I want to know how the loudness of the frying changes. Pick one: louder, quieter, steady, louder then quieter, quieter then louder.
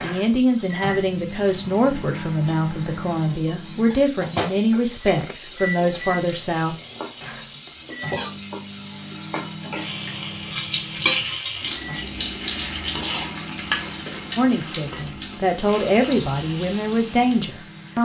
louder then quieter.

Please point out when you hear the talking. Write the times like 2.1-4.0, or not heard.
0.0-6.8, 14.3-17.9.